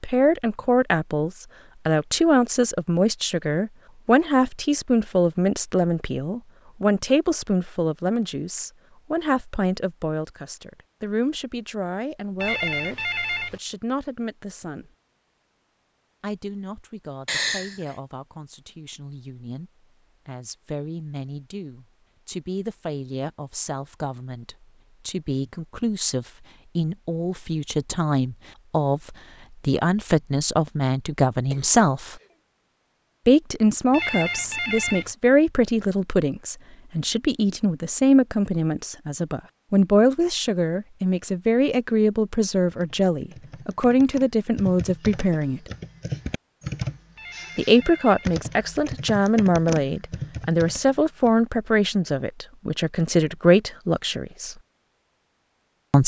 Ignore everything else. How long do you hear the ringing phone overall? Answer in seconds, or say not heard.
4 s.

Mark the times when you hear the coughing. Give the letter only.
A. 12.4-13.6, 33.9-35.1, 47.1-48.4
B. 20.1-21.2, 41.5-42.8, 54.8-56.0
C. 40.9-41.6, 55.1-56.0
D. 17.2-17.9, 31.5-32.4
D.